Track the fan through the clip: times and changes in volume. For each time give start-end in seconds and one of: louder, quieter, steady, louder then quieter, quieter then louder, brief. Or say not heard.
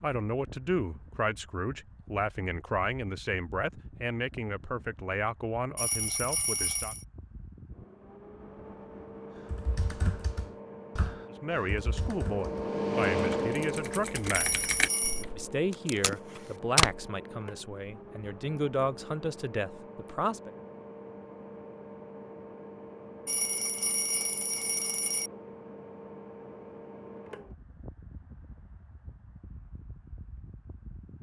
0.2-31.1 louder then quieter.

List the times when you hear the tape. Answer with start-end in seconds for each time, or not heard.
15.7-17.1.